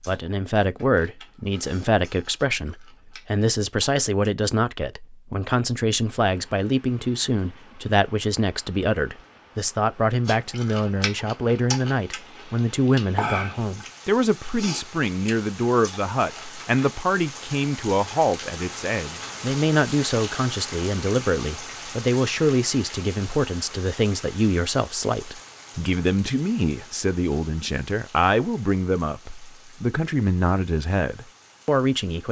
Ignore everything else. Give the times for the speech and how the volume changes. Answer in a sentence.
You can hear the speech from 0.0 to 32.2 s, at a steady volume.